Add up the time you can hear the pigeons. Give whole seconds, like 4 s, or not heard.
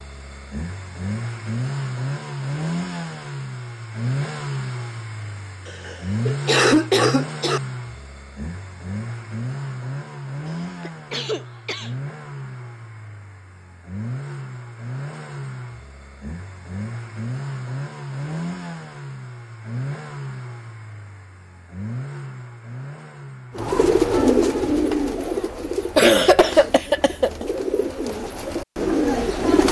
6 s.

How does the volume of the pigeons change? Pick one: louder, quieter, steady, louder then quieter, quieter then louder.
quieter then louder.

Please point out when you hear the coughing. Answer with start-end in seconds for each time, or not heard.
5.7-7.6, 10.6-11.9, 25.9-27.4.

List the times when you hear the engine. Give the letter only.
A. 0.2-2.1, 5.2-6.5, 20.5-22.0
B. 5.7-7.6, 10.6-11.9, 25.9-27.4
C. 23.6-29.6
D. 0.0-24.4
D.